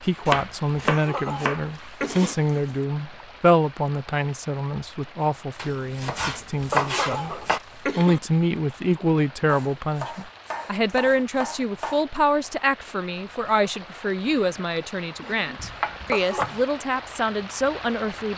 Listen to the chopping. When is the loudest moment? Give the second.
7 s.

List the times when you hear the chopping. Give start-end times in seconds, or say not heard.
0.2-2.7, 5.5-7.6, 9.4-12.1, 15.2-16.6.